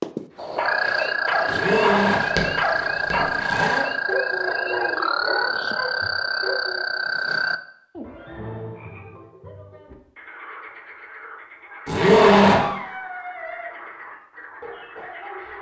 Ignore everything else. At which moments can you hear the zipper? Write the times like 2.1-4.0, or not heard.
1.5-3.9, 11.8-12.6.